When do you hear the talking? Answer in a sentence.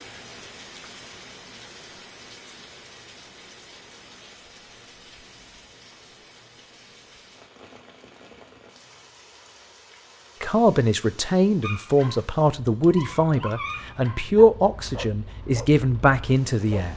The talking can be heard from 10.4 to 16.9 s.